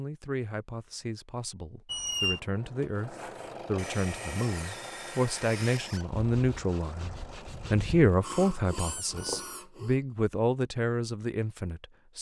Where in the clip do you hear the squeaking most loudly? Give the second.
2 s.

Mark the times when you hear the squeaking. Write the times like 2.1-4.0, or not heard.
1.9-2.4, 5.5-6.0, 8.7-9.7.